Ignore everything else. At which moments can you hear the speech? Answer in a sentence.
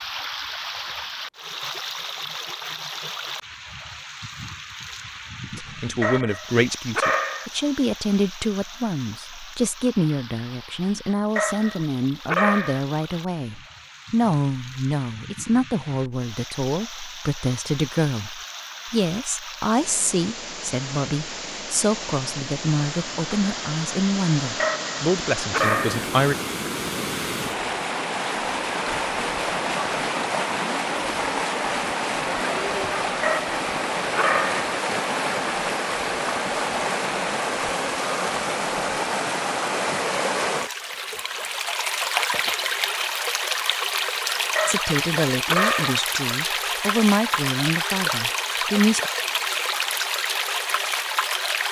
The speech can be heard from 5.5 to 26.4 s and from 44.6 to 49.1 s.